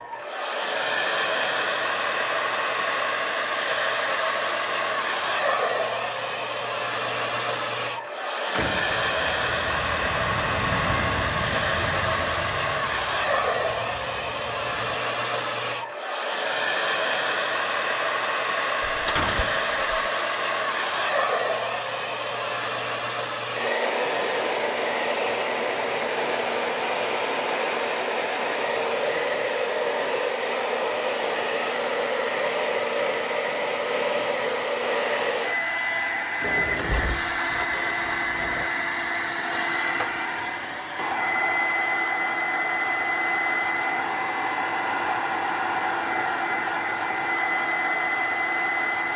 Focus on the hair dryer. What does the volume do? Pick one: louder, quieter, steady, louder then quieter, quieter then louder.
steady.